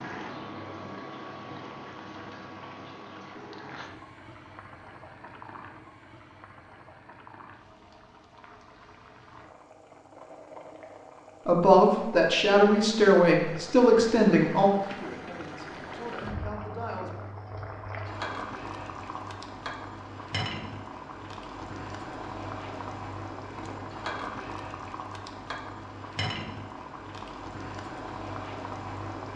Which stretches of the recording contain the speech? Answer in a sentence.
You can hear the speech from 11.4 to 17.2 s.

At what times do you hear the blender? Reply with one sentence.
The blender can't be heard in this clip.